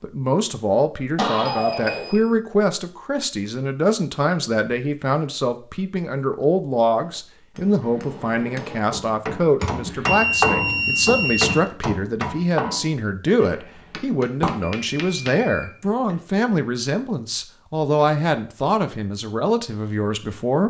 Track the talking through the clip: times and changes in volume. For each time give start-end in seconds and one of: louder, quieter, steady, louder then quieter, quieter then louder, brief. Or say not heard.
0.0-20.6 steady.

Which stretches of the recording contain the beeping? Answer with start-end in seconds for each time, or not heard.
1.1-2.2, 9.6-11.6, 14.4-15.7.